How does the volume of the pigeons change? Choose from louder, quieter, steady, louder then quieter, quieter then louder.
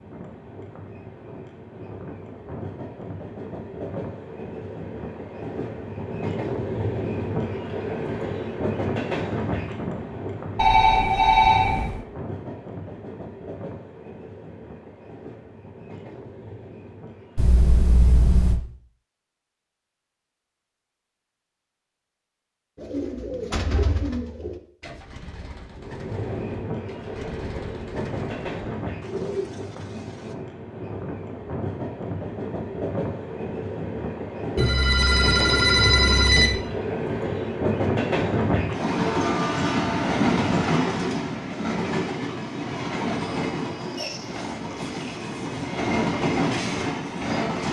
quieter then louder.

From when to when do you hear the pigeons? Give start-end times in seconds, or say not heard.
22.8-30.4.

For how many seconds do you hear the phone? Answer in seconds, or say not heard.
5 s.